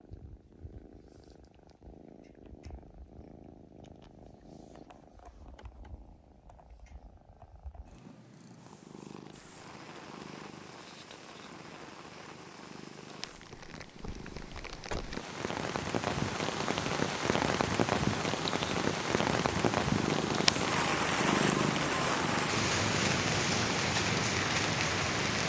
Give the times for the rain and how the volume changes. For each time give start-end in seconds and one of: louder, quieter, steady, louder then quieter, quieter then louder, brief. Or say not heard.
9.3-25.4 louder.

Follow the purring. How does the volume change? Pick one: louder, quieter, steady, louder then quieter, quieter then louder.
louder.